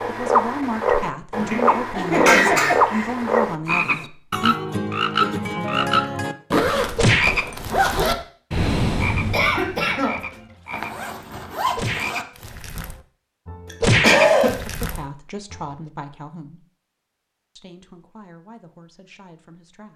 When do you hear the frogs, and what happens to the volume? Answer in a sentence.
You can hear the frogs from 0.0 to 15.6 s, getting quieter then louder.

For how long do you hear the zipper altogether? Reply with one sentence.
You can hear the zipper for 3 seconds altogether.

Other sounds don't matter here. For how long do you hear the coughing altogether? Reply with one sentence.
The coughing can be heard for 4 seconds in total.